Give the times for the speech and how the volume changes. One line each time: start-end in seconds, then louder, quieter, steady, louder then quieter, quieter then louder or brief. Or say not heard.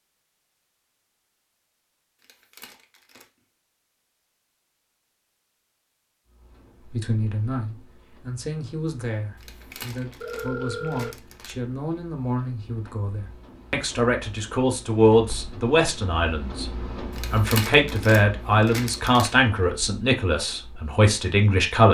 6.8-21.8 louder.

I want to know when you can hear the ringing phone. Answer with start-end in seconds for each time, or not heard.
9.7-11.2.